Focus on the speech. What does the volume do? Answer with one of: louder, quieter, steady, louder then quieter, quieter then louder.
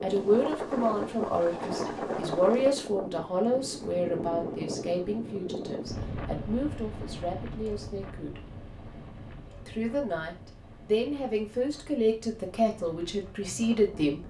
quieter then louder.